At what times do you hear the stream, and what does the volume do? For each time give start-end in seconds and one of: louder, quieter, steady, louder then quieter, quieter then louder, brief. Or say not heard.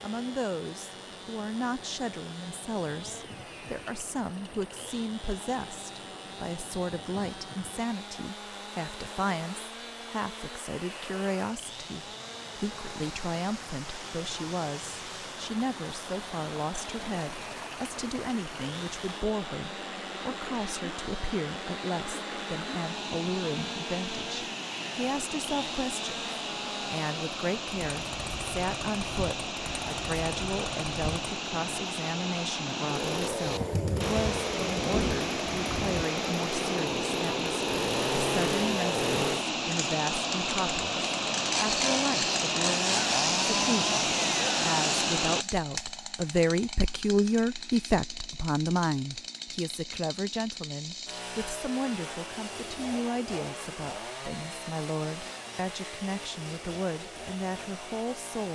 0.0-45.5 louder.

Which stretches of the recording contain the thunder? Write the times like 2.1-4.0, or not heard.
33.4-36.0.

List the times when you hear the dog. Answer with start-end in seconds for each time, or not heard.
not heard.